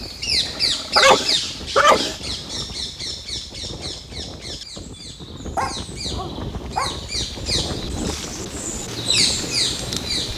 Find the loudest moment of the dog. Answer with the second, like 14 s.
1 s.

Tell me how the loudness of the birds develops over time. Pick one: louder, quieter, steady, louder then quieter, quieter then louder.
quieter then louder.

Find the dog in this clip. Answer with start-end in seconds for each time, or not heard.
0.5-2.6, 5.5-7.0.